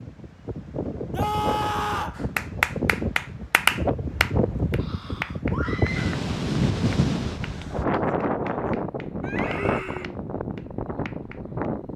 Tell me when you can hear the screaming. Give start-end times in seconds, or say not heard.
1.1-2.2, 5.5-6.2, 9.2-10.1.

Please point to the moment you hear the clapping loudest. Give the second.
4 s.